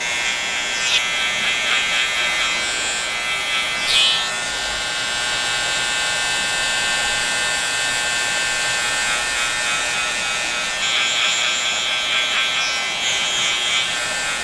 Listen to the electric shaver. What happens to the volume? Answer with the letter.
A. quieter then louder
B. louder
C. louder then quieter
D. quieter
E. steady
E.